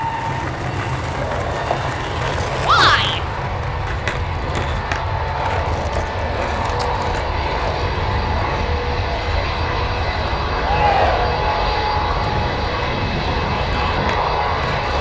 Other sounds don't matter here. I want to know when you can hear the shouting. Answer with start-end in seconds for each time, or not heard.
2.6-3.2, 10.6-11.4.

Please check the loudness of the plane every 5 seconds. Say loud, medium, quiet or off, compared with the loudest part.
medium, loud, loud.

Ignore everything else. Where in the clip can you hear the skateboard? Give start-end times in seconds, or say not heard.
0.0-14.9.